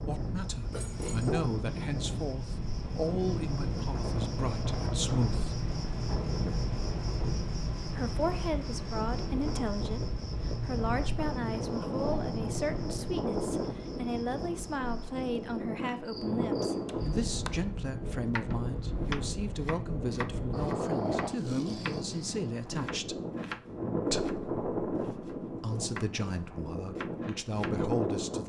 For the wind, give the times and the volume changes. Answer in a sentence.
The wind can be heard from 0.0 to 28.4 s, at a steady volume.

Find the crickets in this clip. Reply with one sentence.
The crickets can be heard from 0.0 to 17.2 s.